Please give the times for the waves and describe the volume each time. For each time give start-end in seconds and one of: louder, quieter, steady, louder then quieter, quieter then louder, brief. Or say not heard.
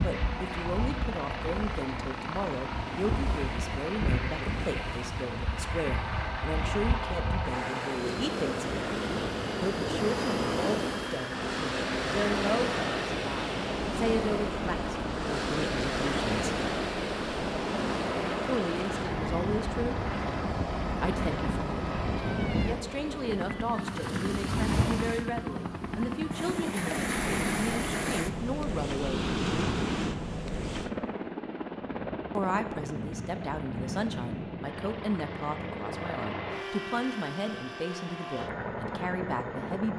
0.0-30.9 louder.